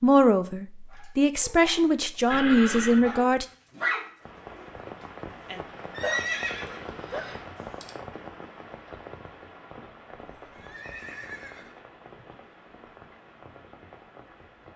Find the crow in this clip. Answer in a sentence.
You can't hear the crow here.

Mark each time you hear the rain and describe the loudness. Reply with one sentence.
The rain can be heard from 4.2 to 14.7 s, getting quieter.